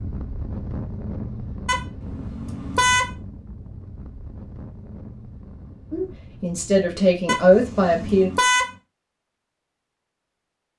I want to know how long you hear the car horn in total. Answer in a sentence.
You can hear the car horn for 3 seconds altogether.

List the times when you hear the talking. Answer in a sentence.
You can hear the talking from 5.9 to 8.3 s.